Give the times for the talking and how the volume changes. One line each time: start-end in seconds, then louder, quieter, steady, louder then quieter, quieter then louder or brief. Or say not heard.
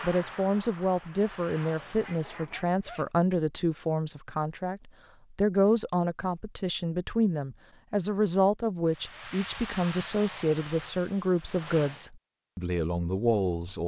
0.0-13.8 steady.